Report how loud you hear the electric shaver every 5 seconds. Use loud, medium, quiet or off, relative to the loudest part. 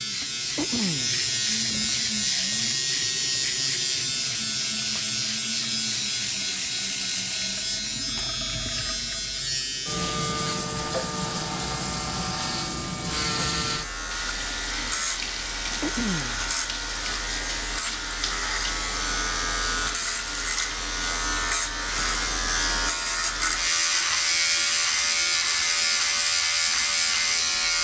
loud, medium, medium, medium, loud, loud.